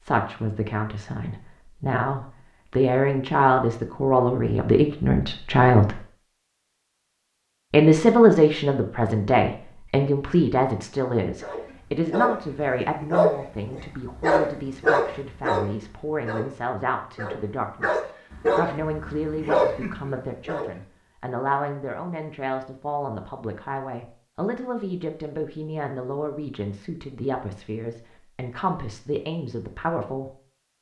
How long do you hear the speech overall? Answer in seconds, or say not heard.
29 s.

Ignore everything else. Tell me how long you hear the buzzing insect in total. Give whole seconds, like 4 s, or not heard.
not heard.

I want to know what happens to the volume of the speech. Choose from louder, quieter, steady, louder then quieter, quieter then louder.
quieter.